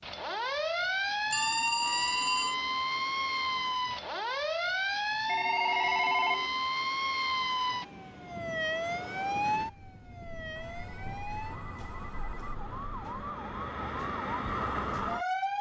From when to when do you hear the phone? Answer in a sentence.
The phone can be heard from 1.3 to 2.5 s, from 5.2 to 6.5 s and from 10.6 to 12.6 s.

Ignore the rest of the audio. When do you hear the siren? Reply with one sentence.
You can hear the siren from 0.0 to 15.5 s.